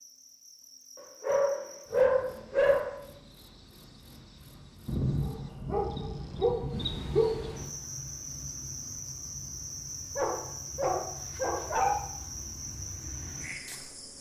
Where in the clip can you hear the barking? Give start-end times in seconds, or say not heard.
0.9-3.0, 4.8-7.5, 10.2-11.9.